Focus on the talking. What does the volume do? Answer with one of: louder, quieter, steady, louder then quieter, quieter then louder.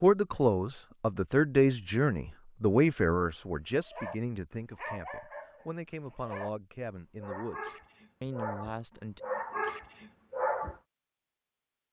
quieter.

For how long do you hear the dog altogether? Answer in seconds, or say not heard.
7 s.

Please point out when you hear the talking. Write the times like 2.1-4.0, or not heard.
0.0-9.2.